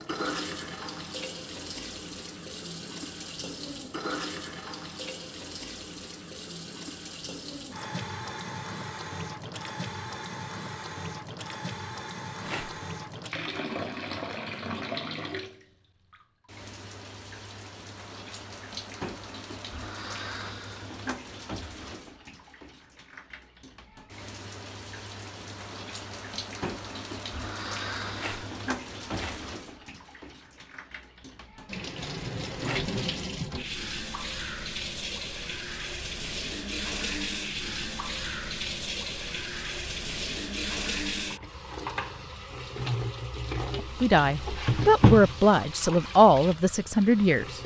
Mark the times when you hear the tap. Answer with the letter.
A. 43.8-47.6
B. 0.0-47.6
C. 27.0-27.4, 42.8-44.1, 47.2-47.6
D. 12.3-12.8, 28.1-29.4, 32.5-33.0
B.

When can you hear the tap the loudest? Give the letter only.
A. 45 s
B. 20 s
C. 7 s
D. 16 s
A.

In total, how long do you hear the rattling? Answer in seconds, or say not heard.
2 s.